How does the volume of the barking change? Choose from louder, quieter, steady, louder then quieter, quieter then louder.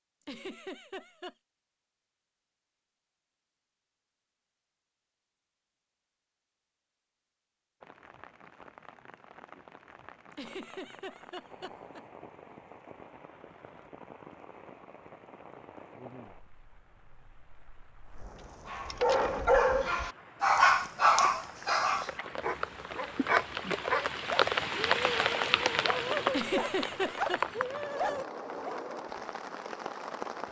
quieter.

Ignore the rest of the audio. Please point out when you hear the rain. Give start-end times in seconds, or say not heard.
7.8-30.4.